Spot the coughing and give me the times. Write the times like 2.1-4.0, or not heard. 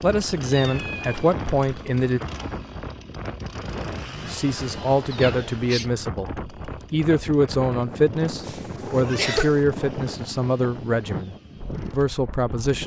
8.4-9.6.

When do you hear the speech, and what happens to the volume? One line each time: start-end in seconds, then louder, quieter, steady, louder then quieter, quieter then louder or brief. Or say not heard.
0.0-2.2 brief
4.2-12.8 steady.